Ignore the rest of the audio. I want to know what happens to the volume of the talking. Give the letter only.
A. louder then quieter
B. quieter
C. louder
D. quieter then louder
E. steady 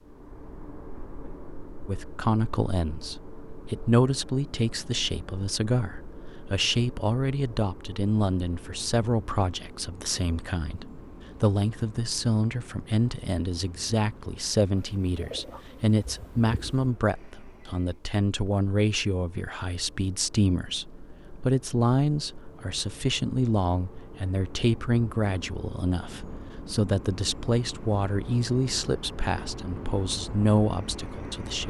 E.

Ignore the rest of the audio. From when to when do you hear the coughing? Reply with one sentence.
You can't hear the coughing here.